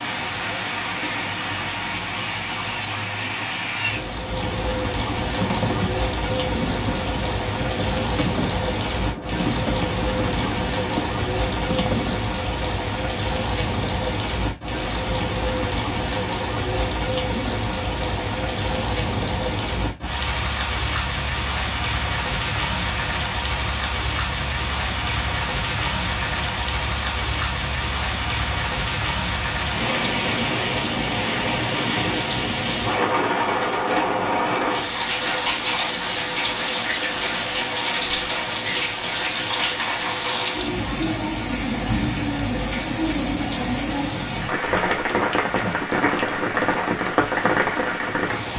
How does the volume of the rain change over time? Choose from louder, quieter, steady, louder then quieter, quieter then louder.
steady.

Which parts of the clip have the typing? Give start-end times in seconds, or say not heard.
5.3-12.2.